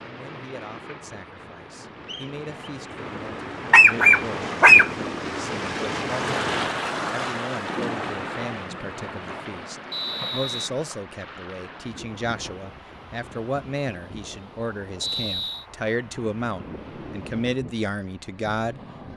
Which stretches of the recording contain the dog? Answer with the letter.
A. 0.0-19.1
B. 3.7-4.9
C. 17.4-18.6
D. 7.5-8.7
B.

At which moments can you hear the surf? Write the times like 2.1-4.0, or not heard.
0.0-19.1.